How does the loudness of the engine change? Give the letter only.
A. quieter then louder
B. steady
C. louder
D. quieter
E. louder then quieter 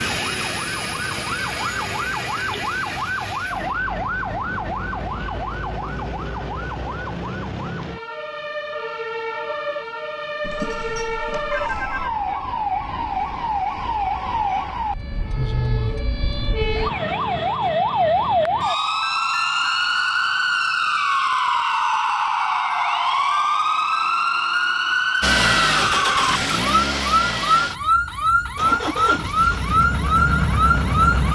A.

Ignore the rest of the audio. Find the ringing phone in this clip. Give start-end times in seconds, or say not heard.
10.4-12.1.